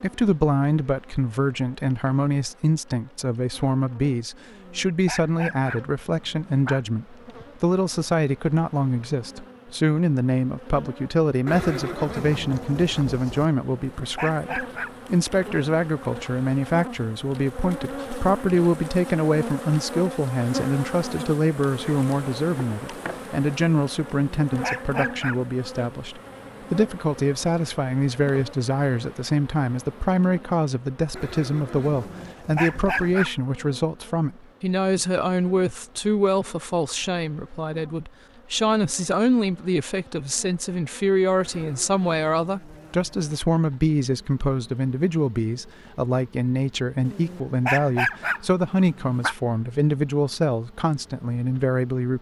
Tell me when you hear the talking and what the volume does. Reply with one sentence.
You can hear the talking from 0.0 to 52.1 s, at a steady volume.